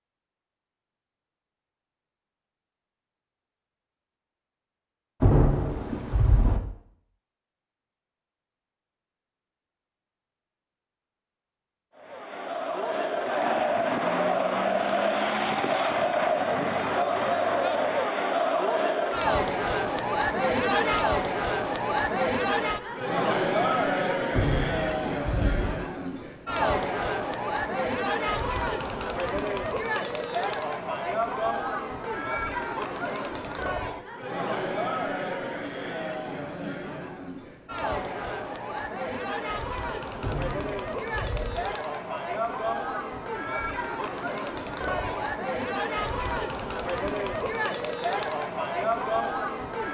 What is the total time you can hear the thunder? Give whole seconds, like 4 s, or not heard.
4 s.